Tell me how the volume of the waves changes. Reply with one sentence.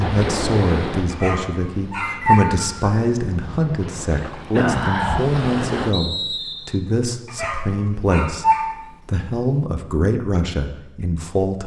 The volume of the waves goes down, then up.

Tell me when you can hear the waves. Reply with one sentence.
The waves can be heard from 0.0 to 6.0 s.